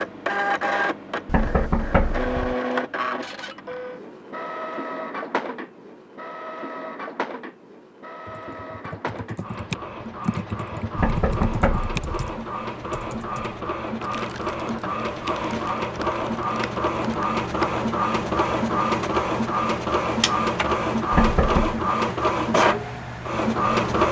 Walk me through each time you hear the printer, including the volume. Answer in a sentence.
You can hear the printer from 0.0 to 24.0 s, getting quieter then louder.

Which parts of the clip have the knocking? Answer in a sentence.
You can hear the knocking from 1.2 to 2.5 s, from 10.9 to 12.2 s and from 21.1 to 21.8 s.